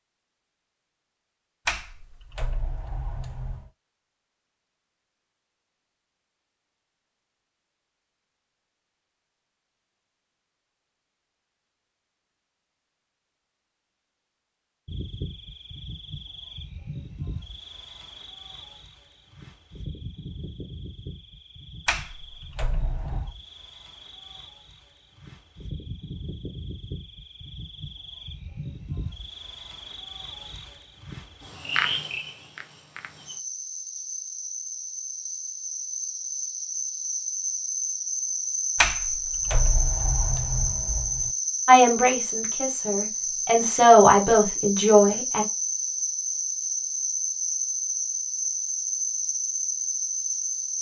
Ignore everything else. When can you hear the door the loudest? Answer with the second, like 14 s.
39 s.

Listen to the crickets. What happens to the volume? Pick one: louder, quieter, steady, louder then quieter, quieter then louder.
louder.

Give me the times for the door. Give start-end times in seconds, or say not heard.
1.6-3.7, 21.9-23.4, 38.8-41.3.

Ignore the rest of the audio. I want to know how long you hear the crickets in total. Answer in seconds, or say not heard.
36 s.